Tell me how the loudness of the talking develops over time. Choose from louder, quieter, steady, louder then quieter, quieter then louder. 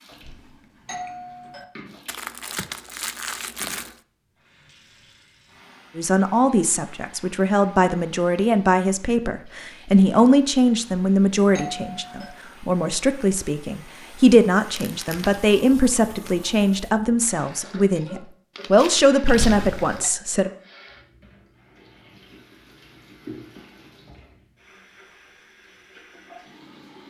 steady.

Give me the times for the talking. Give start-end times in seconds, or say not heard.
6.0-20.5.